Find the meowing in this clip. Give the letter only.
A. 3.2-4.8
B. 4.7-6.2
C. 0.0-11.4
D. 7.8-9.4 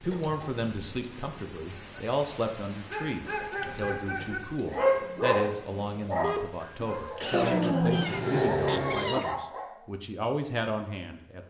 D.